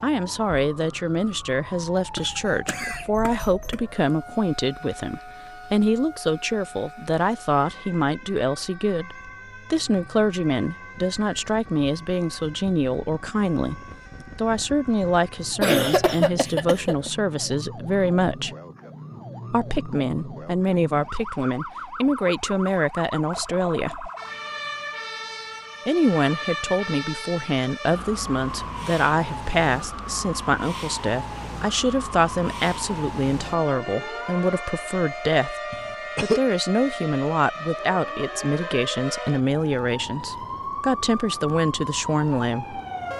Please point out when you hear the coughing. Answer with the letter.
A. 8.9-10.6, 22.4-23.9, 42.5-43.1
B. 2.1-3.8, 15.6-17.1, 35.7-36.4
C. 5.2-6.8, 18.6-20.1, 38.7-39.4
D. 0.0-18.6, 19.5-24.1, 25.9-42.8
B.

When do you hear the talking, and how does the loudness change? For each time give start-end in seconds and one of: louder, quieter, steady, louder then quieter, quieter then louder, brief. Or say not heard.
0.0-18.6 steady
19.5-24.1 steady
25.9-42.8 steady.